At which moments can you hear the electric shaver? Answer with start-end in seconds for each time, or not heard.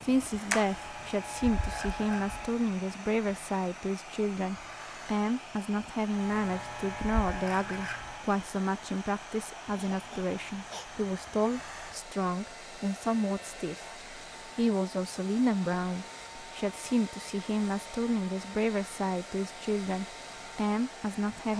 0.0-2.5, 6.1-8.2.